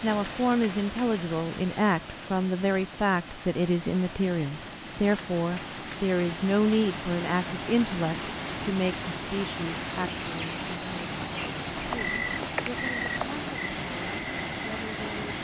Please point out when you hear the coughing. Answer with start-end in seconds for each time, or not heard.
not heard.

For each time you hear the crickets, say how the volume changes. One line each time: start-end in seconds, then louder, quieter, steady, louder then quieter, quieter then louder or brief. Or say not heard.
0.0-15.4 steady.